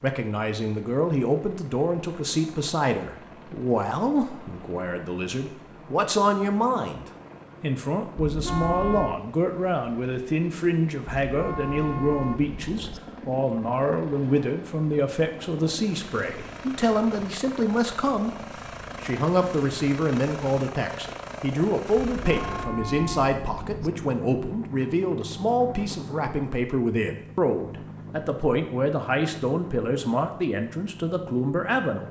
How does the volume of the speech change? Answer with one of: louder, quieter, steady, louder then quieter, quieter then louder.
steady.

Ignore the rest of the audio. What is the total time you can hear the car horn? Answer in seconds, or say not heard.
5 s.